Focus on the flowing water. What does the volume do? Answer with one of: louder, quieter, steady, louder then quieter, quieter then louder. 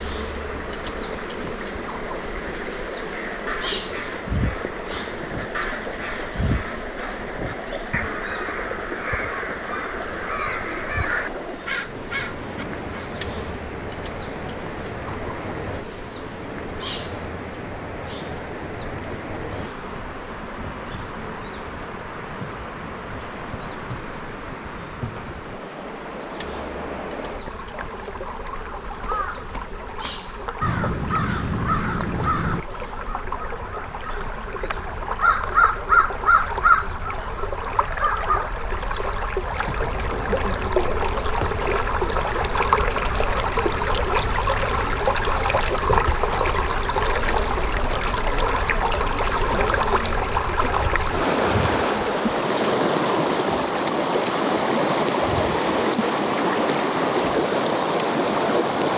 louder.